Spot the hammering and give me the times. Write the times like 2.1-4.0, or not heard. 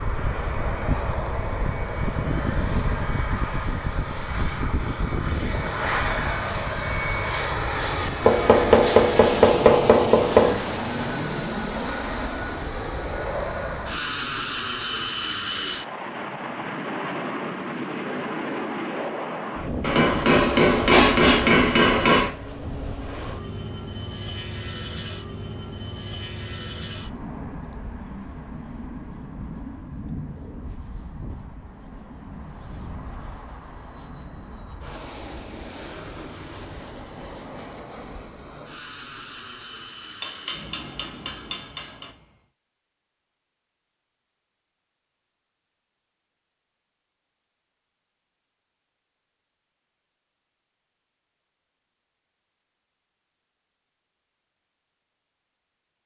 8.2-10.6, 19.8-22.3, 40.2-42.1.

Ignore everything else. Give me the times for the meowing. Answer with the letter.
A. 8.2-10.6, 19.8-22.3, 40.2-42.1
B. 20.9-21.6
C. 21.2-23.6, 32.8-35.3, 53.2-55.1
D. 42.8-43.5
B.